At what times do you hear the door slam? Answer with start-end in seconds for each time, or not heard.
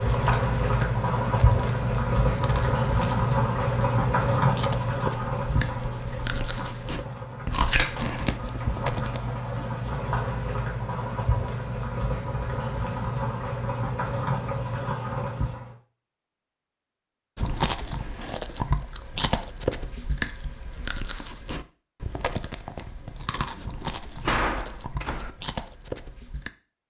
23.8-25.4.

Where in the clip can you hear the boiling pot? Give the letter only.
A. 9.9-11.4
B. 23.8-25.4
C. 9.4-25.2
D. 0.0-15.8
D.